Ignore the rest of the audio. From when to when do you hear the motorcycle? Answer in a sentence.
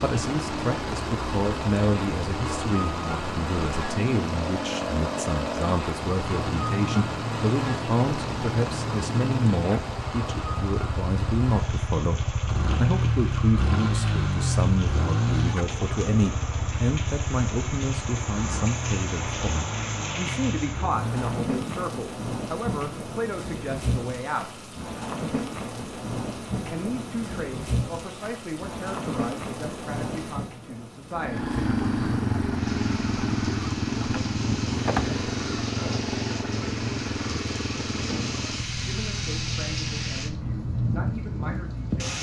You can hear the motorcycle from 0.2 to 21.9 s and from 31.1 to 42.0 s.